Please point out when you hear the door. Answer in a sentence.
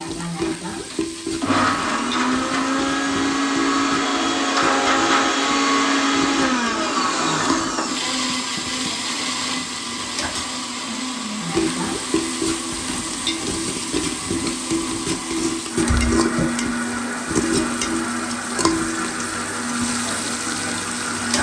The door can be heard from 8.3 to 8.9 s and from 15.8 to 16.6 s.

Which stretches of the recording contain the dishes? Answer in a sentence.
You can't hear the dishes here.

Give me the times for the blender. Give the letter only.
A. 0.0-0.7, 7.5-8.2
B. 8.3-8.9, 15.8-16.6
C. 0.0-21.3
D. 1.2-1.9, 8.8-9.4
C.